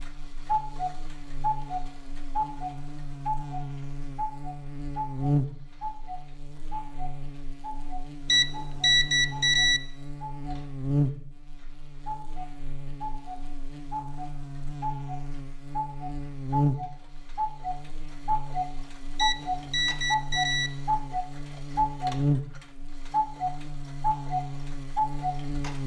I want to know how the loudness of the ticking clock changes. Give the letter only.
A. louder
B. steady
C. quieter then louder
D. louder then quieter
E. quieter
C.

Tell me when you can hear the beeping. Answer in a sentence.
You can hear the beeping from 8.2 to 9.8 s and from 19.1 to 20.7 s.